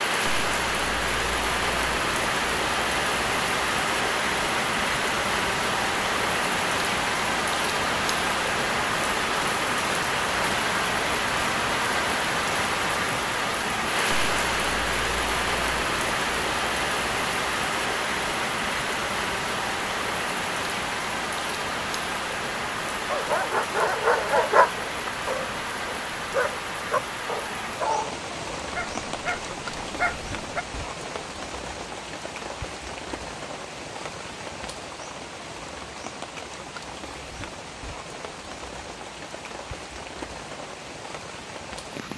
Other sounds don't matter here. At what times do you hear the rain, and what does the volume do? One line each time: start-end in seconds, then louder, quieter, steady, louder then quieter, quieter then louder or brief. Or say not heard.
0.0-42.1 quieter.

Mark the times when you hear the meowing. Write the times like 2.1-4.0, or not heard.
not heard.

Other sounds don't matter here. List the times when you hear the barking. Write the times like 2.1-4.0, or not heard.
23.1-30.6.